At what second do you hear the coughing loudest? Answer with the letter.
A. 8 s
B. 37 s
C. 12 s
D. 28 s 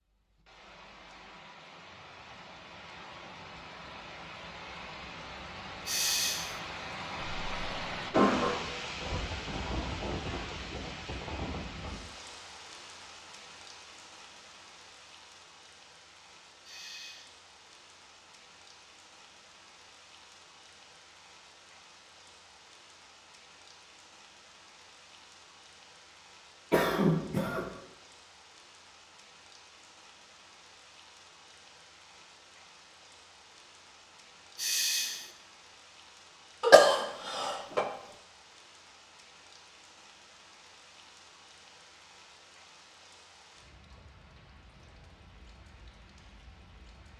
B.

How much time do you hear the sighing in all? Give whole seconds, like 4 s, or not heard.
2 s.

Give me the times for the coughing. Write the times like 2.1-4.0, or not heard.
7.2-8.6, 26.7-27.6, 36.6-37.9.